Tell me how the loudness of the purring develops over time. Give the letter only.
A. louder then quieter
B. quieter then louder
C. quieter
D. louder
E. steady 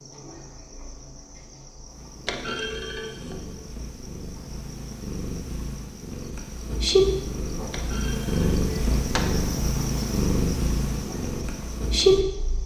D.